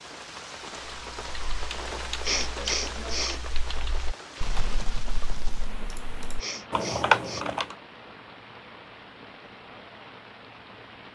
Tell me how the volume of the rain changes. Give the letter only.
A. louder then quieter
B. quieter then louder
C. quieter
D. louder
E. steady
C.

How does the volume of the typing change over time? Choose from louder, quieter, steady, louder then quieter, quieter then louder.
quieter then louder.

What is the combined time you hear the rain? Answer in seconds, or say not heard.
11 s.